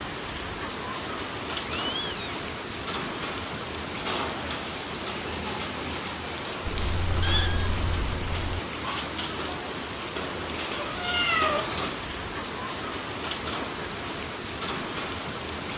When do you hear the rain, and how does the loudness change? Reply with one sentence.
The rain can be heard from 0.0 to 15.7 s, at a steady volume.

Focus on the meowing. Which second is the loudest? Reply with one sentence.
The volume of the meowing peaks at 11 seconds.